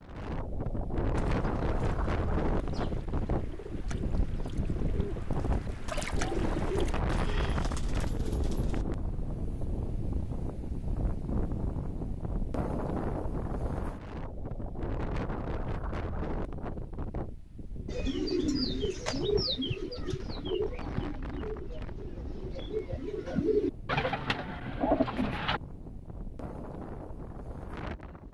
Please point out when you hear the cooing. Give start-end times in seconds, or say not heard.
1.1-8.8, 17.9-25.6.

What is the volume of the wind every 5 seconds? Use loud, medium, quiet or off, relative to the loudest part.
loud, loud, loud, medium, medium, medium.